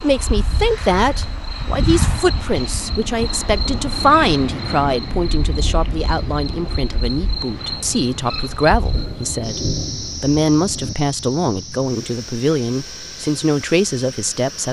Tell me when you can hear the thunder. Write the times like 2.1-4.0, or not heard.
8.9-10.9.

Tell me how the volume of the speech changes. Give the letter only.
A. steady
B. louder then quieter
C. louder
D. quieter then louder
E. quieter
A.